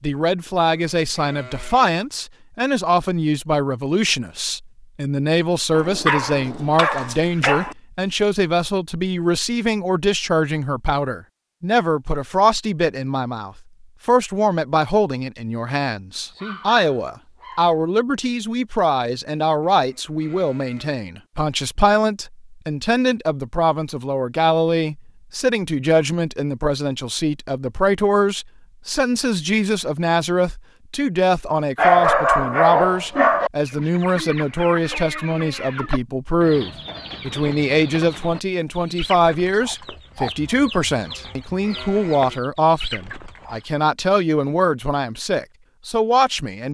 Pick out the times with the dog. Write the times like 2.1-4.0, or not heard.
5.7-7.8, 16.3-17.8, 31.8-33.5.